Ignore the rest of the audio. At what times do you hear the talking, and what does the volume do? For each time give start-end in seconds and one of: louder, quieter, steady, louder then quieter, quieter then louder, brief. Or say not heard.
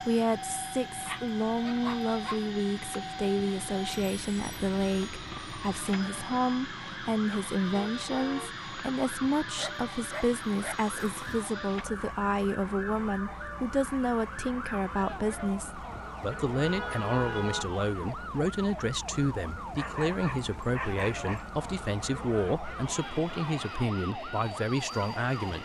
0.0-25.6 steady.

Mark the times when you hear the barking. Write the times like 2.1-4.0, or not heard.
1.0-2.4, 9.6-11.4, 19.8-21.5.